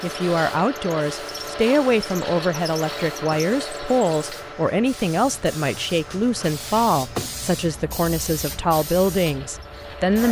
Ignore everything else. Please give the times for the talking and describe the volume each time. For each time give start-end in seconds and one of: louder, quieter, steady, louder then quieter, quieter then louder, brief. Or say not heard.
0.0-10.2 steady.